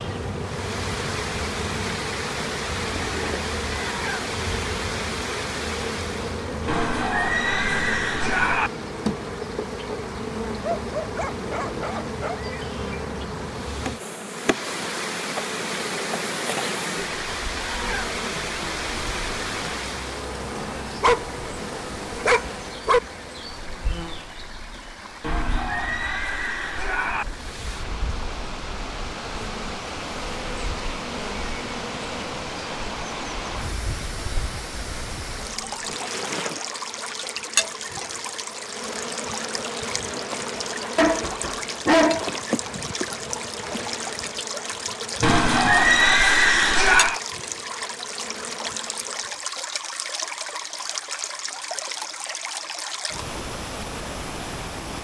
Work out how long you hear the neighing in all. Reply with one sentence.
The neighing can be heard for 6 seconds in total.